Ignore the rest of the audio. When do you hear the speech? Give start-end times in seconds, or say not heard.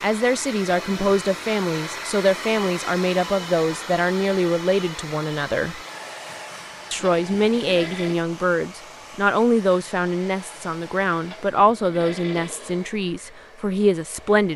0.0-5.8, 6.9-14.5.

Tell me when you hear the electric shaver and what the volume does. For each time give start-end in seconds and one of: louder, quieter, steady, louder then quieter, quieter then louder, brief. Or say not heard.
not heard.